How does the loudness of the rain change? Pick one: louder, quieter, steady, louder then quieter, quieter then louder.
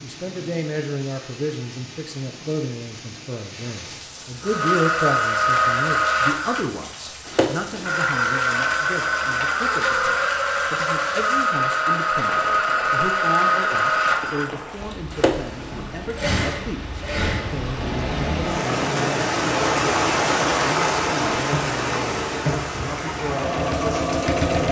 louder.